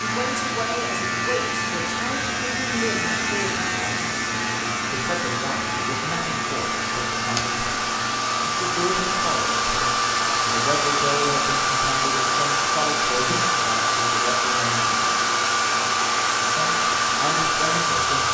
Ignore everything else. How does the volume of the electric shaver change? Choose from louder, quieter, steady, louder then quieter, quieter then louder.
quieter.